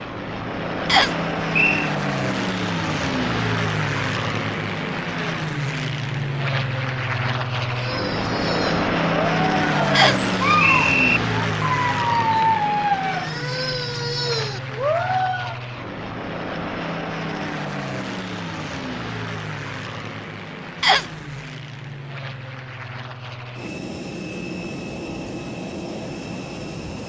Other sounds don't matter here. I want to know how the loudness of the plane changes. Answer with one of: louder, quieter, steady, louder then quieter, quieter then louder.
quieter.